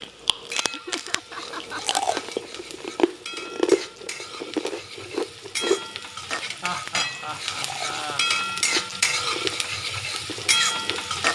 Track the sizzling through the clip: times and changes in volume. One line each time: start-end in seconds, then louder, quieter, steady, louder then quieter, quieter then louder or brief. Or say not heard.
0.0-11.2 louder.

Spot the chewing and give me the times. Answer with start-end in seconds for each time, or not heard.
0.0-11.1.